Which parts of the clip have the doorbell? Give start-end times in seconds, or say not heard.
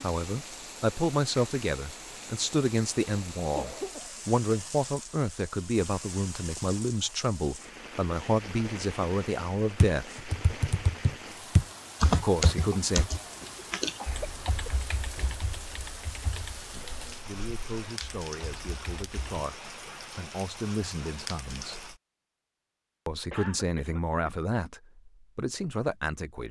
not heard.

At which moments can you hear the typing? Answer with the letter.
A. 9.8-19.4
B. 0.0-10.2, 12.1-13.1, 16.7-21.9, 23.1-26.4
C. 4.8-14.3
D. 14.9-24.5
A.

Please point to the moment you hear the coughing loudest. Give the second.
4 s.